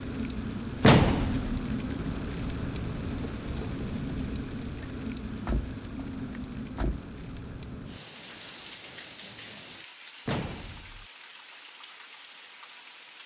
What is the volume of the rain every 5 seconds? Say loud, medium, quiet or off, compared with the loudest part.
loud, medium, medium.